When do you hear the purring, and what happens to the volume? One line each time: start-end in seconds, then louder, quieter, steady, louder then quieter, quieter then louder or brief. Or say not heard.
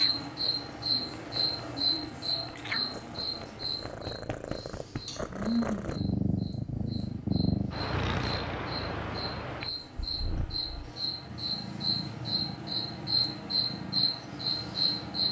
0.0-15.2 louder then quieter.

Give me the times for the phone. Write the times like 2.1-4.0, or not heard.
not heard.